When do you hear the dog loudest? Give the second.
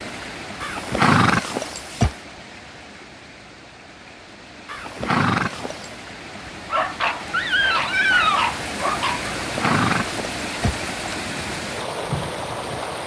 8 s.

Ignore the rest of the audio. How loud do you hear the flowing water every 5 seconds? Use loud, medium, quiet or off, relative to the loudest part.
medium, loud, loud.